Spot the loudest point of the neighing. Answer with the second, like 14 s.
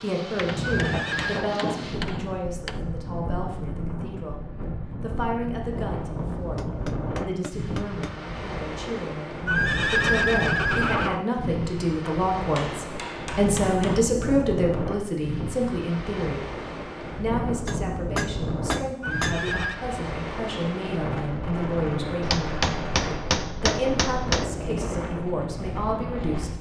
10 s.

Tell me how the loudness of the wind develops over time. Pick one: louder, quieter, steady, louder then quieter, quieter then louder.
steady.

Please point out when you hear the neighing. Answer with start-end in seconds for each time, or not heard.
0.6-1.5, 9.4-11.2, 19.0-19.8.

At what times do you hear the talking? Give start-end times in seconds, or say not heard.
0.0-4.4, 5.0-16.4, 17.1-26.5.